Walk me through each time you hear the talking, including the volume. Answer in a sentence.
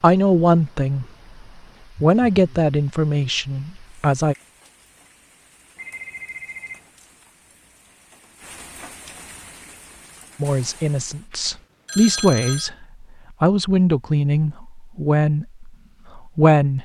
You can hear the talking briefly from 0.0 to 1.1 s; briefly from 2.0 to 4.3 s; and from 10.4 to 16.8 s, getting louder then quieter.